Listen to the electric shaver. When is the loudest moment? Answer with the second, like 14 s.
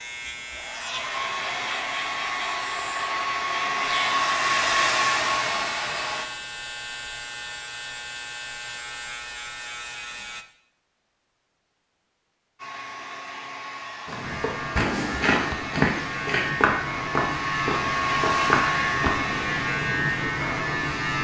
20 s.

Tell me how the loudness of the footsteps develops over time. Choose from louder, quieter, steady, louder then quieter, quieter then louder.
steady.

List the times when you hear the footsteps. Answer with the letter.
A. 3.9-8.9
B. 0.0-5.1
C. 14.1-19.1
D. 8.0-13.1
C.